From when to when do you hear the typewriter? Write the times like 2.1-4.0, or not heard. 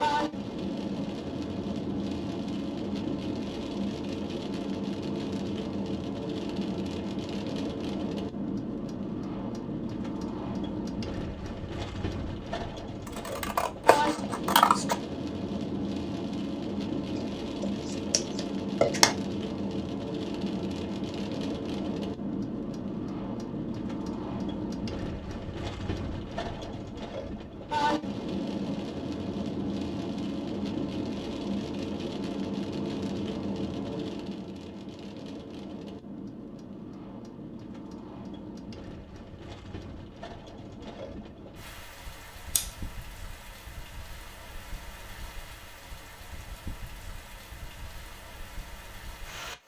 not heard.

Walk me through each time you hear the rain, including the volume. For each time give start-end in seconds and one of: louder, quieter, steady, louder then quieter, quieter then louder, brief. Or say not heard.
0.0-49.6 quieter.